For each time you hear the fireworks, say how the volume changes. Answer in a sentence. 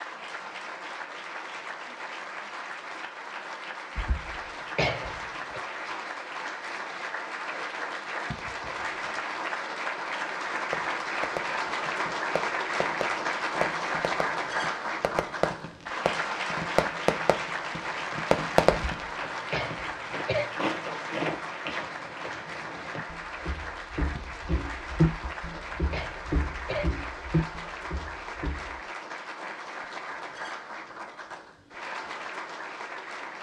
The fireworks can be heard from 10.4 to 19.0 s, getting louder.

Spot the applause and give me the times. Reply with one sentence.
The applause can be heard from 0.0 to 33.3 s.